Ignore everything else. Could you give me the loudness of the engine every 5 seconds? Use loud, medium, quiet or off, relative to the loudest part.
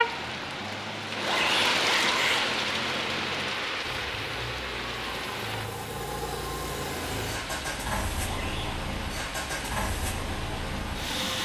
medium, loud, loud.